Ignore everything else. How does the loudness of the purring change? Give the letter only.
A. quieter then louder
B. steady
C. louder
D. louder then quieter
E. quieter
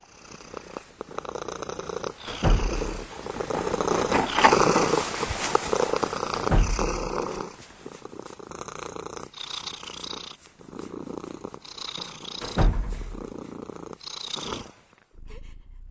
D.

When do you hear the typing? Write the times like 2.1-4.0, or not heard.
not heard.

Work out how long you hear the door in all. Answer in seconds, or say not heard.
2 s.